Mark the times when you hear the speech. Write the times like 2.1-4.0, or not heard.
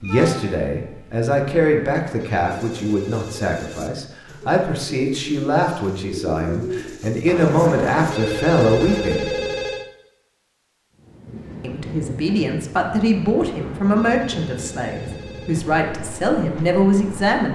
0.0-9.3, 11.6-17.4.